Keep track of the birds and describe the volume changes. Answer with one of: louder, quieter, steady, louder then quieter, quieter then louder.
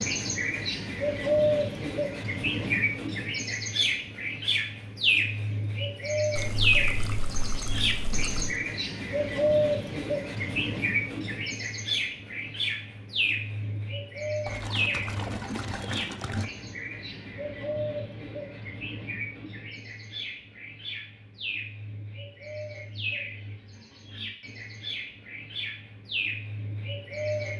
quieter.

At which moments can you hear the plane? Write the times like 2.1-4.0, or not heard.
not heard.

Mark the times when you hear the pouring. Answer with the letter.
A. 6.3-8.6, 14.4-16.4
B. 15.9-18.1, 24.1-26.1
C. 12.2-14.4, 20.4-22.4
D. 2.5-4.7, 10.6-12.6
A.